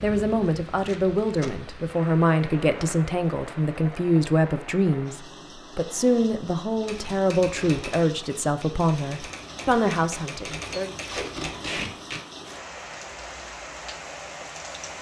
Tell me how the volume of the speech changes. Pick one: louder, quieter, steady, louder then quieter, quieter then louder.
steady.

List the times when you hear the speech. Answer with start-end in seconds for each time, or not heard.
0.0-10.9.